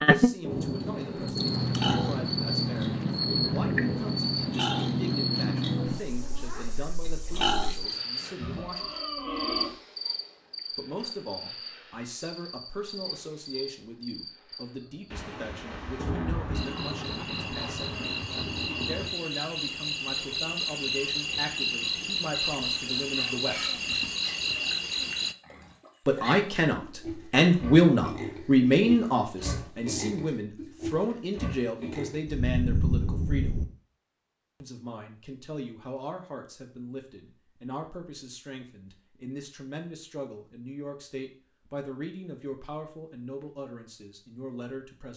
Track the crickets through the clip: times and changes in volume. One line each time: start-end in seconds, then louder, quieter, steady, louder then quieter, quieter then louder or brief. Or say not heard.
0.0-25.4 quieter then louder.